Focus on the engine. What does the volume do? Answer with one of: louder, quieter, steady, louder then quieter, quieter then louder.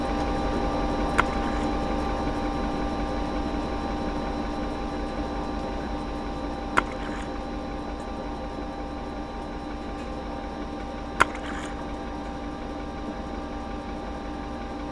quieter.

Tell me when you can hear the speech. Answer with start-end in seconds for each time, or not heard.
not heard.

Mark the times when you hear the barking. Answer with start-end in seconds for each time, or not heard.
not heard.